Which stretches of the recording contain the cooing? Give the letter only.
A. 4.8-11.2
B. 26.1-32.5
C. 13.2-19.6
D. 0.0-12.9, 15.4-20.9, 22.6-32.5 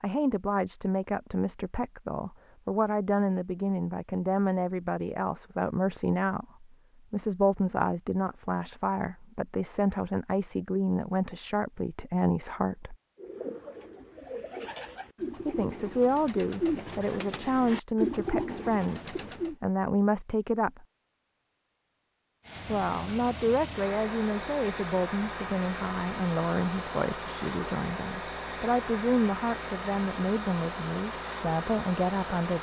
C.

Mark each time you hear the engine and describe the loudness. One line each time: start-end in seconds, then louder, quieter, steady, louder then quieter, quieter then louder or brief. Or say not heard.
22.4-32.5 steady.